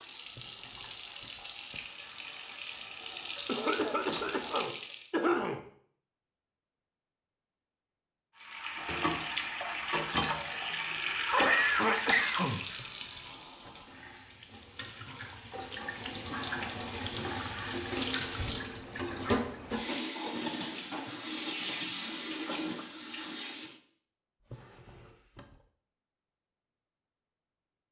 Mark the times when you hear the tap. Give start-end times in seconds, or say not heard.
0.0-5.1, 8.4-23.8.